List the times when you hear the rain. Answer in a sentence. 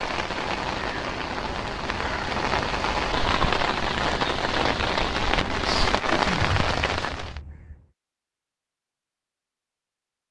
You can hear the rain from 0.0 to 7.4 s.